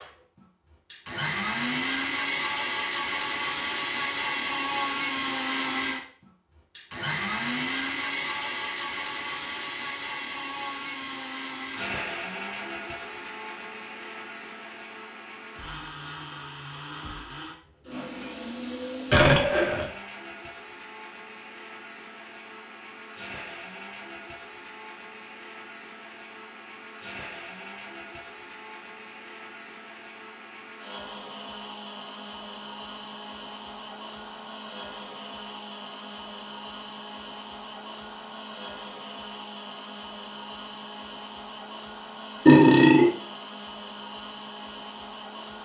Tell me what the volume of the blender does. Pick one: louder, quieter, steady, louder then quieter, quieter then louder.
quieter.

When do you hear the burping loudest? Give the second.
43 s.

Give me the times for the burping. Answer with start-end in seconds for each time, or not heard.
19.1-19.9, 42.5-43.1.